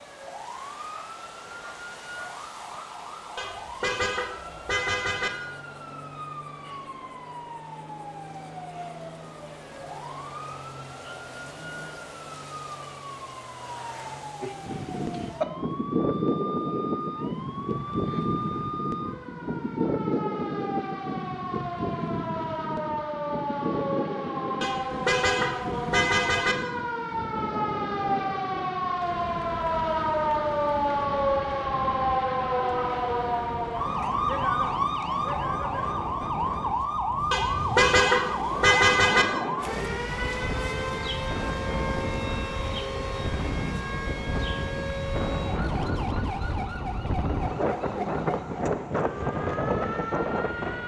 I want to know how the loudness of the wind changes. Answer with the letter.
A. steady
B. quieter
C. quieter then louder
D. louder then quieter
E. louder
C.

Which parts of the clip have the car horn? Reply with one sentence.
The car horn can be heard from 3.4 to 5.3 s, from 24.6 to 26.6 s and from 37.3 to 39.2 s.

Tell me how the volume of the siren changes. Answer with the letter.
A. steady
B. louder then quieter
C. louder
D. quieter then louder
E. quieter
B.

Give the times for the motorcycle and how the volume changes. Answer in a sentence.
You can't hear the motorcycle here.